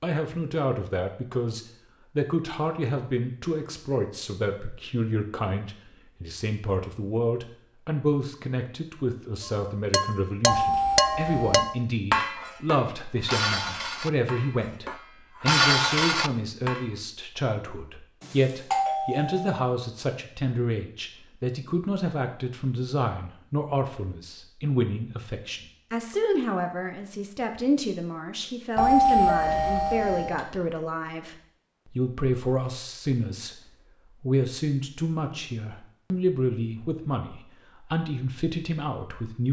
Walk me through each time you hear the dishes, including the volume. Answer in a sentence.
The dishes can be heard from 9.4 to 16.9 s, getting quieter then louder.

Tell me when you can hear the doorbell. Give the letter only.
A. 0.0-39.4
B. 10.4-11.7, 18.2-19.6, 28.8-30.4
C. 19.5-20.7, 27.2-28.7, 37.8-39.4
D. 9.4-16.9
B.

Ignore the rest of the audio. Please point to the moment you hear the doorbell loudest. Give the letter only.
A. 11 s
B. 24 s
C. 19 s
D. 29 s
D.